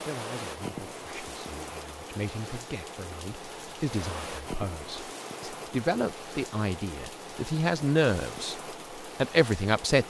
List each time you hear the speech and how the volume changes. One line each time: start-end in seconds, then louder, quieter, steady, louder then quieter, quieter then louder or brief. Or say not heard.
0.0-8.6 louder
9.2-10.0 brief.